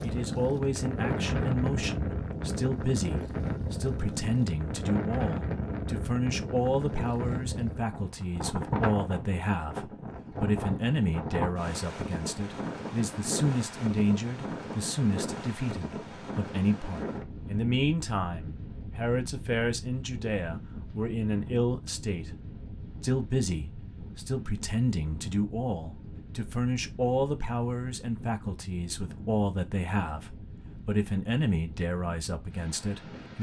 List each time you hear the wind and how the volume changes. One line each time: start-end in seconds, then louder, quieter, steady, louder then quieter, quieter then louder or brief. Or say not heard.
0.0-33.3 quieter.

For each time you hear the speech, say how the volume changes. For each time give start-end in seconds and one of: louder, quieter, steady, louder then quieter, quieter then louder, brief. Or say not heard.
0.0-22.4 steady
23.0-33.3 steady.